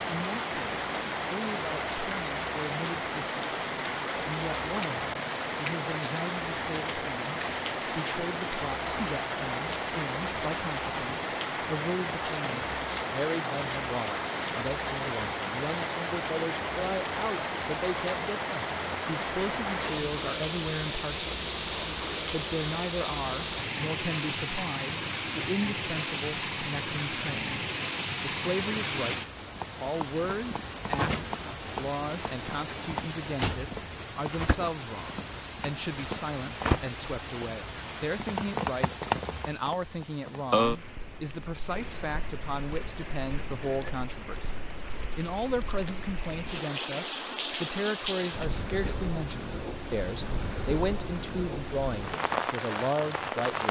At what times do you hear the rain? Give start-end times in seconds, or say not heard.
0.0-53.6.